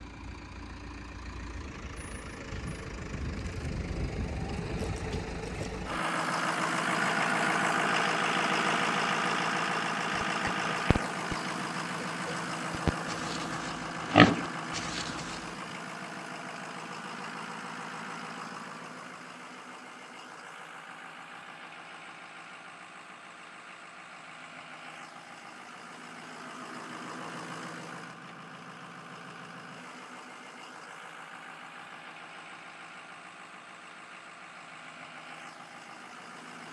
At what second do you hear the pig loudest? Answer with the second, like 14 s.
14 s.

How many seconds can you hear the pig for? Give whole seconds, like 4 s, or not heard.
5 s.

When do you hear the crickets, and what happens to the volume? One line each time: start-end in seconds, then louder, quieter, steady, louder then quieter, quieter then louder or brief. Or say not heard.
not heard.